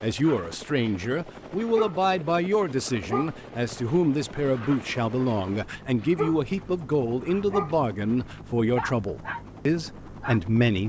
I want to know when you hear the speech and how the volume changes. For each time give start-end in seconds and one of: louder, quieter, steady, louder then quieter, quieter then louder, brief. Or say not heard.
0.0-10.8 steady.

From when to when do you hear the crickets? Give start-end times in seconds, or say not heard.
not heard.